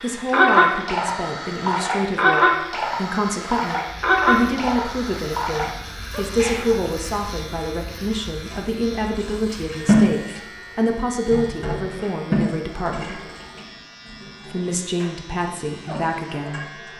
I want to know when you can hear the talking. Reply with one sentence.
The talking can be heard from 0.0 to 13.2 s and from 14.4 to 16.9 s.